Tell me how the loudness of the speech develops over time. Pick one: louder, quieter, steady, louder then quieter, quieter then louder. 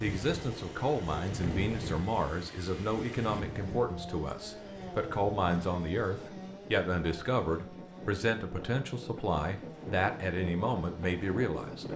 steady.